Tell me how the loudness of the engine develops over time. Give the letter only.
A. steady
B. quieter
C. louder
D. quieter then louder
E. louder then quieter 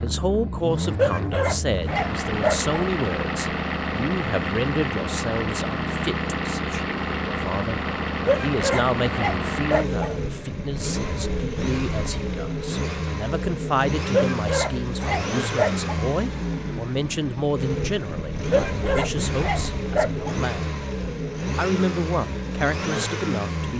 A.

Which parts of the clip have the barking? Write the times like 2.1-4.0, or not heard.
0.9-2.7, 8.2-10.2, 14.1-15.9, 18.5-20.4.